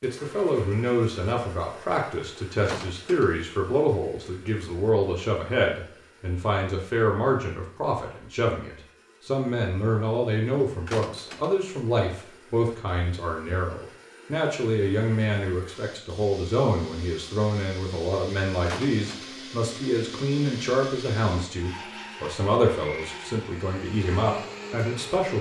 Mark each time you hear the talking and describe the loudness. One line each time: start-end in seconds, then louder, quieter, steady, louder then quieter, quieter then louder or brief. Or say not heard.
0.0-25.3 steady.